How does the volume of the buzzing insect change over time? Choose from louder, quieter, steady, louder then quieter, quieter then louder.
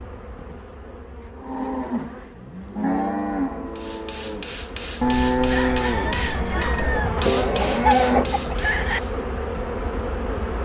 louder.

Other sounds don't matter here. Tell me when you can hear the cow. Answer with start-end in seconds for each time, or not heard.
1.4-8.3.